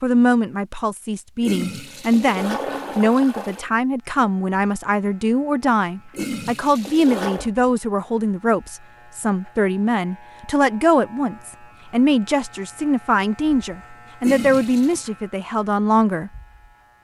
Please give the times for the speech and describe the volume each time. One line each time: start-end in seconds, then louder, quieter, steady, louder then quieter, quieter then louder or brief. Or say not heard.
0.0-16.3 steady.